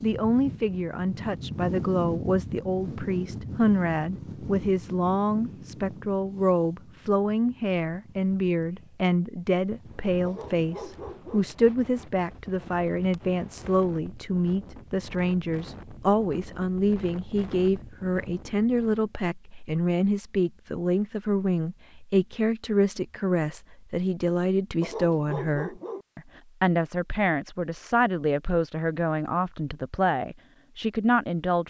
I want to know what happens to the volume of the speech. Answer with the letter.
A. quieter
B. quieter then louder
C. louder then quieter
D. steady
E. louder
D.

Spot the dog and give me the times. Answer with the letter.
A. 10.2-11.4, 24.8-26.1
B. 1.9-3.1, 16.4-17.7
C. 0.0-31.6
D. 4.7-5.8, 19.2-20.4
A.